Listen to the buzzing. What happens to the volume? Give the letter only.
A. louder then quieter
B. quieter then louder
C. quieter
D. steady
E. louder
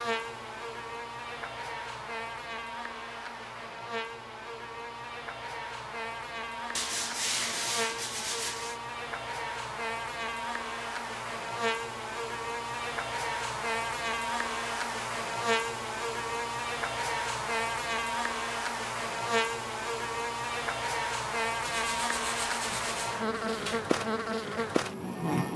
E.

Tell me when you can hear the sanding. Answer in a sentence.
You can hear the sanding from 6.8 to 8.8 s and from 21.6 to 23.9 s.